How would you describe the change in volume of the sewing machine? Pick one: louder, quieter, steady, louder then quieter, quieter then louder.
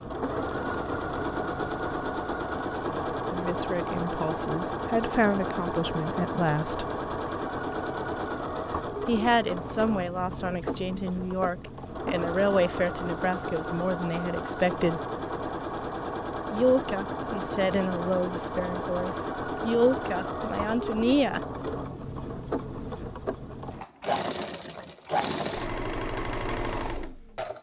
steady.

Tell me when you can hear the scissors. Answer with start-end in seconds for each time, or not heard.
not heard.